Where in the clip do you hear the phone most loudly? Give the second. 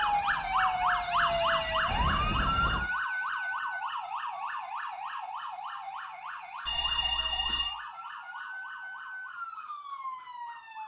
7 s.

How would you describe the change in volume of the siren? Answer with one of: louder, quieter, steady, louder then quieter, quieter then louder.
quieter.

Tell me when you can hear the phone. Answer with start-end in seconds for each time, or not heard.
1.2-2.8, 6.7-7.7.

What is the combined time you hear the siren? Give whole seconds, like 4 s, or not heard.
11 s.